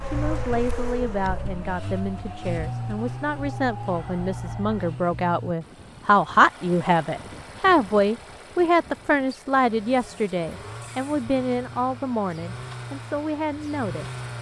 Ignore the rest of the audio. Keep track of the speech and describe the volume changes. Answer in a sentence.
The volume of the speech goes up, then down.